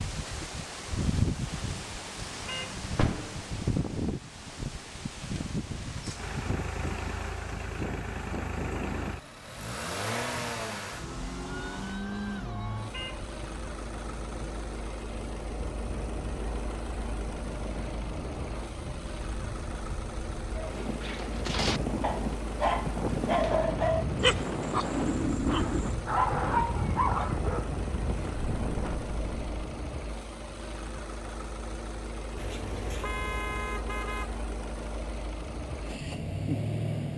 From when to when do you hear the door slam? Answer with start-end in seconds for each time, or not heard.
2.9-3.6.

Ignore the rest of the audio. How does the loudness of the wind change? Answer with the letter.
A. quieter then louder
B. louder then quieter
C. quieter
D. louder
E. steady
A.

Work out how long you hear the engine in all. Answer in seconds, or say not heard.
31 s.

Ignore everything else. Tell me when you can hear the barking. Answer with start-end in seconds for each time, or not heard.
20.6-27.7.